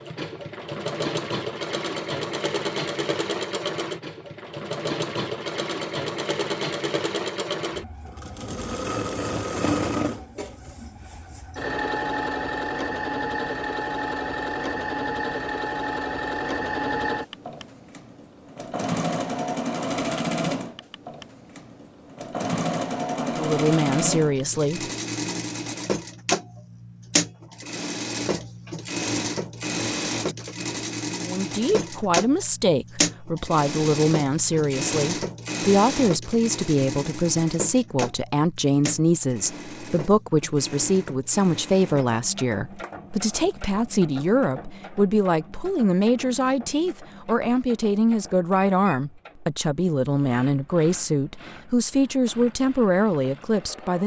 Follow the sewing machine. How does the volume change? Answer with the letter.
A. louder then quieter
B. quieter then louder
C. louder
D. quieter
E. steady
D.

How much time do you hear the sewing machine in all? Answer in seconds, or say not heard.
54 s.